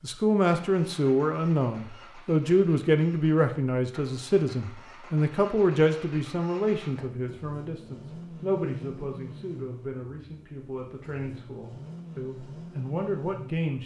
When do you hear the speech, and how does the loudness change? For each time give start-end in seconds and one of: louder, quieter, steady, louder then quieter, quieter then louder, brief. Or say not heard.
0.0-13.8 quieter.